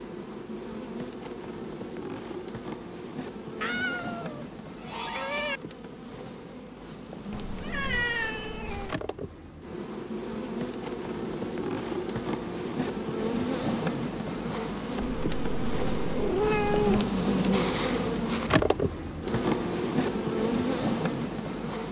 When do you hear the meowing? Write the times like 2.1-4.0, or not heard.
3.6-5.6, 7.3-8.9, 15.0-17.1.